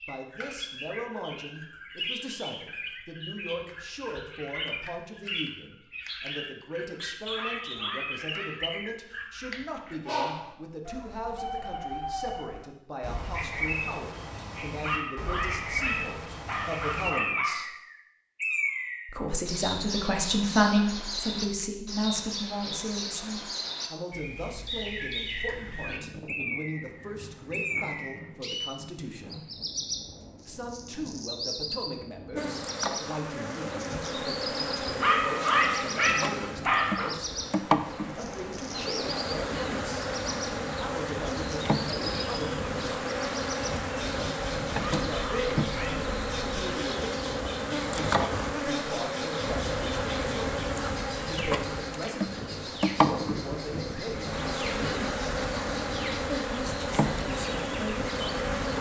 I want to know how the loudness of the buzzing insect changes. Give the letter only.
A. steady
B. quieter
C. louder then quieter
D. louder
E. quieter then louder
A.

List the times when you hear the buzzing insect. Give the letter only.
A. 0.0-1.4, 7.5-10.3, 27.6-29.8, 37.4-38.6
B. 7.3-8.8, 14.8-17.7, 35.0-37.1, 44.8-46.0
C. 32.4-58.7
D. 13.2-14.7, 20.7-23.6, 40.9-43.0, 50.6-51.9
C.